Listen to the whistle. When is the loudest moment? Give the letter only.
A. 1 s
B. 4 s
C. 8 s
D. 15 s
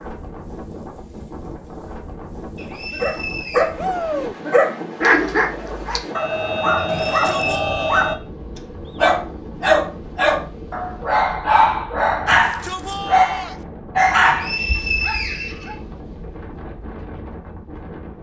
D.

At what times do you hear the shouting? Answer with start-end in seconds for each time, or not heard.
3.8-4.3, 6.8-8.1, 12.2-13.6.